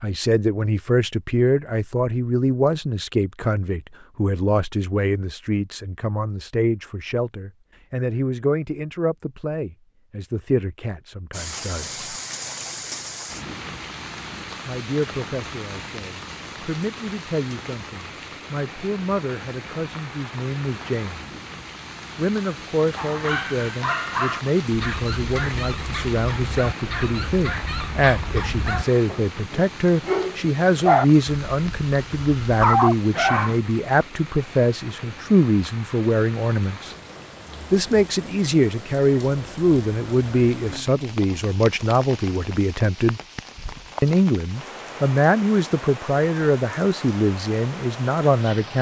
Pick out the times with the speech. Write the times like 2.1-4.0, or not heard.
0.0-12.1, 14.7-21.2, 22.1-37.0, 37.7-43.2, 44.0-48.7.